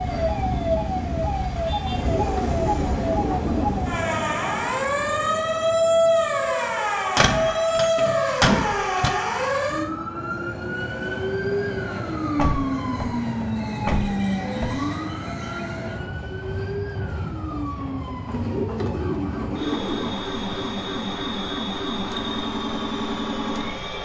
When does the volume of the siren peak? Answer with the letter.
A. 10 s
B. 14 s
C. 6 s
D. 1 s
C.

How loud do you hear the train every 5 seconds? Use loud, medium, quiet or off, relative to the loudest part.
loud, medium, loud, loud, loud.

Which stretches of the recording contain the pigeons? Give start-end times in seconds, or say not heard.
1.9-3.7, 18.2-20.1.